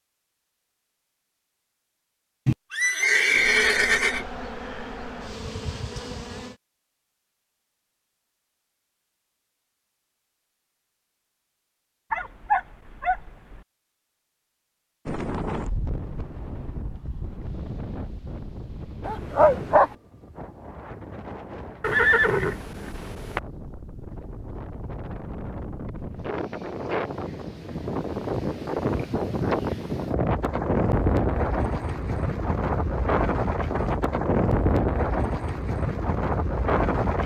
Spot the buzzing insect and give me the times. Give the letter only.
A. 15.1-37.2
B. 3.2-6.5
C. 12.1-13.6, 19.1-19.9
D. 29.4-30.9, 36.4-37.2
B.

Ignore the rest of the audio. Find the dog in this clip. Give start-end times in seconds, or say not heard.
12.1-13.6, 19.1-19.9.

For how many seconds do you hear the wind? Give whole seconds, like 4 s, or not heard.
22 s.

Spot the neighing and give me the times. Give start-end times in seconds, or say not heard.
2.5-4.2, 21.8-23.4.